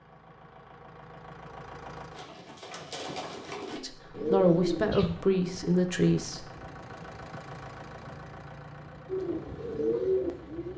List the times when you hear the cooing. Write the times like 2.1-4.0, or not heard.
2.1-5.2, 9.1-10.7.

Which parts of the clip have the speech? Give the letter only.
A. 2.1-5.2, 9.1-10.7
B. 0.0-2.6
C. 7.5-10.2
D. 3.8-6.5
D.